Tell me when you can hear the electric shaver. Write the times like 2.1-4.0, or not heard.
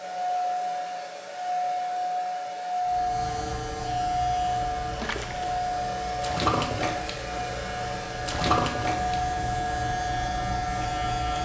2.8-11.4.